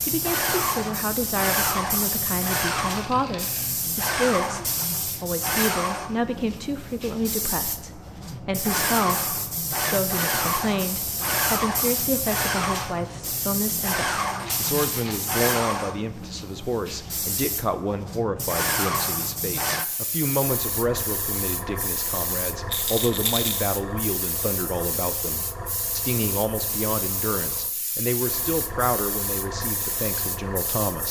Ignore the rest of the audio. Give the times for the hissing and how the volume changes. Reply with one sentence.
You can hear the hissing from 0.0 to 31.0 s, getting quieter.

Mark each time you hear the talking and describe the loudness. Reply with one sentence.
The talking can be heard from 0.0 to 31.0 s, at a steady volume.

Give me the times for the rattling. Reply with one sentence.
The rattling can be heard from 2.9 to 3.8 s, from 14.4 to 15.4 s and from 22.7 to 23.8 s.